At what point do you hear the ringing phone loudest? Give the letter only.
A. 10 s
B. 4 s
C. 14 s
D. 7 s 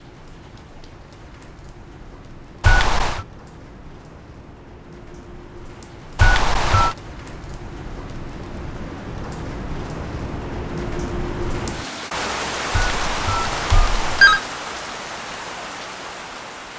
C.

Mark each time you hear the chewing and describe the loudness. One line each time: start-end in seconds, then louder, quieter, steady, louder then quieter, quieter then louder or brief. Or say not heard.
not heard.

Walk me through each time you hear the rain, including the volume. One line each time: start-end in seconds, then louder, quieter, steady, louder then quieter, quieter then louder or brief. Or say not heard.
0.0-16.7 louder.